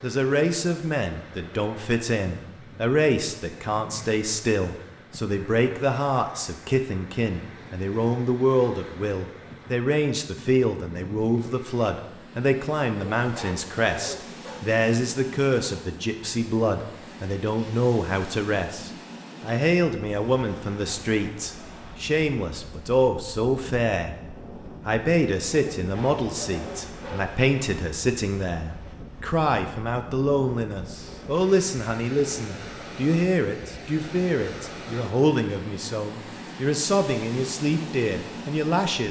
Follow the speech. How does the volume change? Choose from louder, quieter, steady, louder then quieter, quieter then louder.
steady.